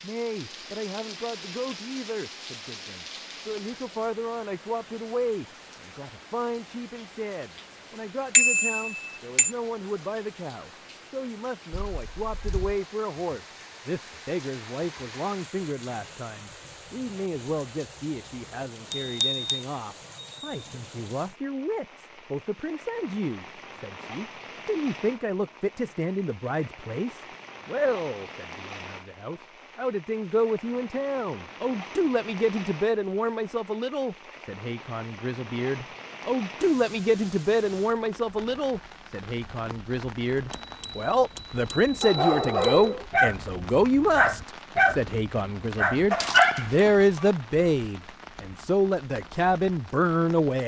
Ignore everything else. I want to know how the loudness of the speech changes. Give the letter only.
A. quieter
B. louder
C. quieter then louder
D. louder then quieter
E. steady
B.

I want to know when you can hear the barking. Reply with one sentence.
You can hear the barking from 42.0 to 47.3 s.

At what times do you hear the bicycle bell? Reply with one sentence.
The bicycle bell can be heard from 8.3 to 9.5 s, from 18.9 to 19.4 s and from 40.5 to 42.9 s.